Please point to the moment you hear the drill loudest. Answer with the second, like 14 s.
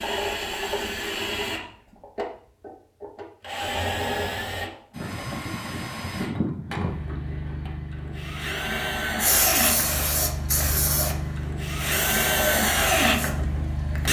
13 s.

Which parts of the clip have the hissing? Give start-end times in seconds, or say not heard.
9.2-13.9.